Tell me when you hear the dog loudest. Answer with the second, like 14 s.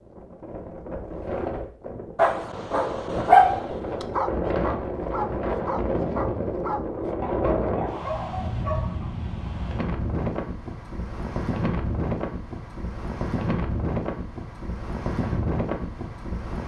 3 s.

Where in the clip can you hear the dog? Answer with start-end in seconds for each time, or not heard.
2.1-9.1.